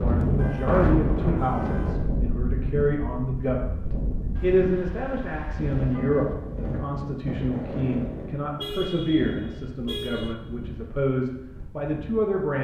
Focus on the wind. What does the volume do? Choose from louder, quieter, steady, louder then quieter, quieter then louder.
quieter.